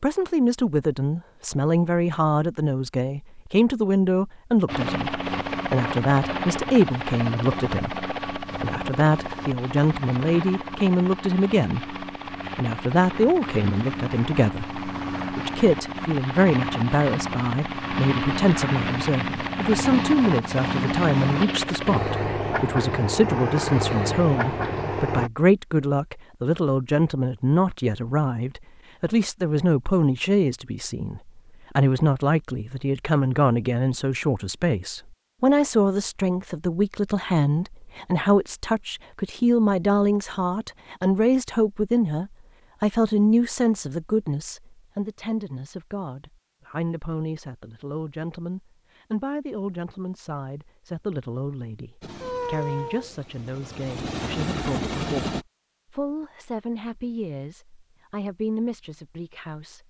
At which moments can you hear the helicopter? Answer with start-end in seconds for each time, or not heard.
4.7-25.3, 52.0-55.5.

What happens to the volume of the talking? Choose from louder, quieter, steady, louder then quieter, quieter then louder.
quieter.